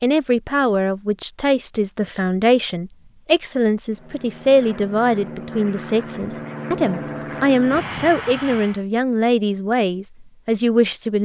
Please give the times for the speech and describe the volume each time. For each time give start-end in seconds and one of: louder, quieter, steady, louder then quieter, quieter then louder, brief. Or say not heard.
0.0-11.2 steady.